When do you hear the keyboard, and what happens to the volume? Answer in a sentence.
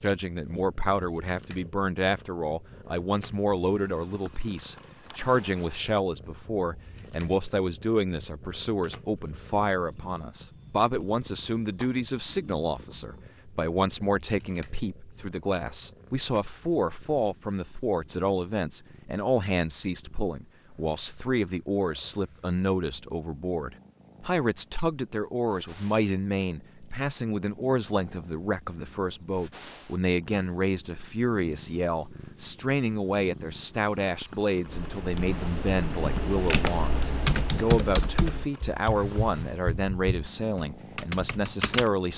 You can hear the keyboard from 34.6 to 41.9 s, getting louder then quieter.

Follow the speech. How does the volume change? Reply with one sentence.
The loudness of the speech stays about the same.